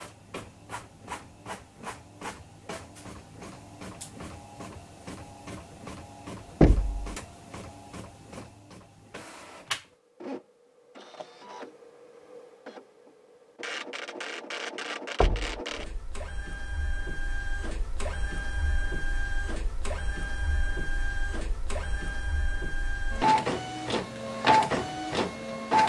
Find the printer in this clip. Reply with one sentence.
You can hear the printer from 0.0 to 25.8 s.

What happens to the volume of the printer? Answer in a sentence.
The volume of the printer goes up.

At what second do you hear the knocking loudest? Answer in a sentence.
The volume of the knocking peaks at 7 seconds.